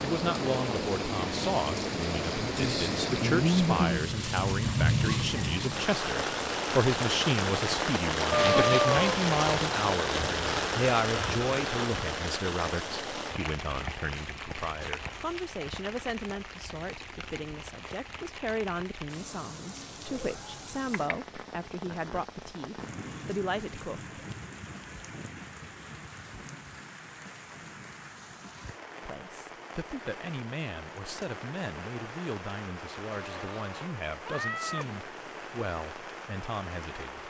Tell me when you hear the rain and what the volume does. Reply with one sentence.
You can hear the rain from 0.0 to 37.2 s, getting quieter.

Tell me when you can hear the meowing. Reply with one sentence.
The meowing can be heard from 8.3 to 9.2 s, from 20.1 to 21.1 s and from 33.1 to 35.0 s.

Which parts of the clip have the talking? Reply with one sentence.
You can hear the talking from 0.0 to 24.1 s and from 29.1 to 37.2 s.